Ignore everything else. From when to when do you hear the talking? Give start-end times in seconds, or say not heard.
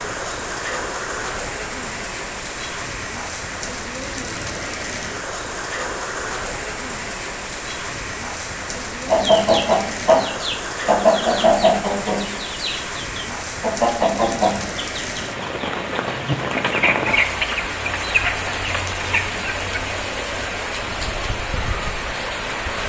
not heard.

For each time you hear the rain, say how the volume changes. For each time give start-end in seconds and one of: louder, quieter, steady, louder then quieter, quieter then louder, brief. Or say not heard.
0.0-22.8 steady.